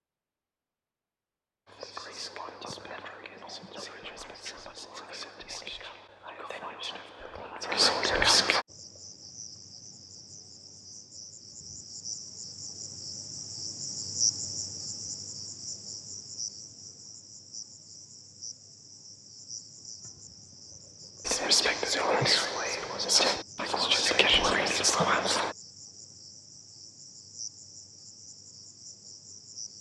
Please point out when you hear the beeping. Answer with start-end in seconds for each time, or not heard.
not heard.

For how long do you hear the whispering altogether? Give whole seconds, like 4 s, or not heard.
11 s.